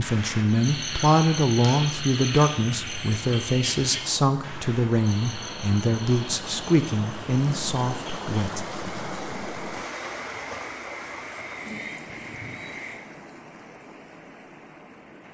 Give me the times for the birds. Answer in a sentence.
You can't hear the birds here.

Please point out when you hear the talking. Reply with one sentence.
You can hear the talking from 0.0 to 8.7 s.